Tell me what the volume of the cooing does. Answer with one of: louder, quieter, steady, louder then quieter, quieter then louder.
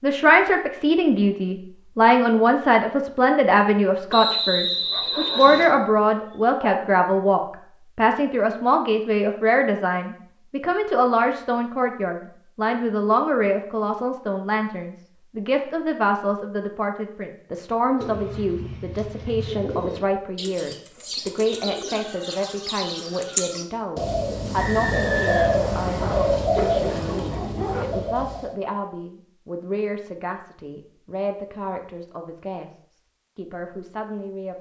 louder.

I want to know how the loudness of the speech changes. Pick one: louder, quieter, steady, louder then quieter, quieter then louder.
quieter.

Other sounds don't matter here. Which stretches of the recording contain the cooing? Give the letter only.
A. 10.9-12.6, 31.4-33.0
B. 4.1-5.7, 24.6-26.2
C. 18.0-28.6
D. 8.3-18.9
C.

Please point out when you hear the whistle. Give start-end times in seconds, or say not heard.
4.1-5.7, 24.6-26.2.